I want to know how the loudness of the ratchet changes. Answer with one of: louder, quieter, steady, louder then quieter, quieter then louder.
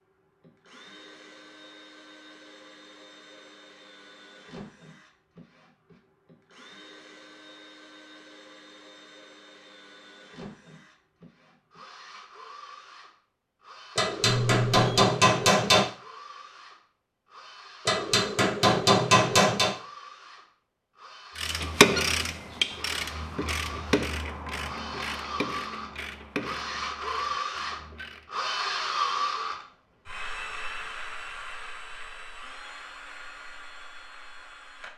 quieter.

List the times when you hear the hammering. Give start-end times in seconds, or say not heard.
13.9-15.8, 17.9-19.8.